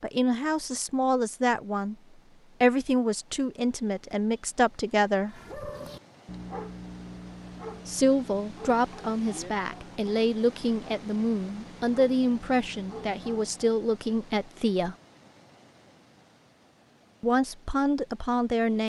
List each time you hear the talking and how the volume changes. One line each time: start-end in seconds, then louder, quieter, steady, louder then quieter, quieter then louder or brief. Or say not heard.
0.0-1.9 brief
2.6-5.4 brief
7.8-14.9 steady
17.2-18.8 brief.